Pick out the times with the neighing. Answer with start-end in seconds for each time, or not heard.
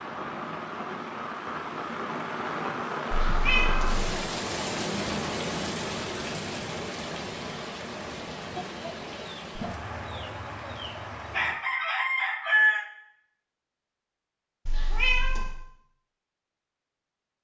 not heard.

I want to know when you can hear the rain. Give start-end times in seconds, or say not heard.
0.0-11.6.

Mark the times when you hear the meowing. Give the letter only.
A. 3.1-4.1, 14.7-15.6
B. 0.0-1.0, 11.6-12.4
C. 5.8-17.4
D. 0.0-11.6
A.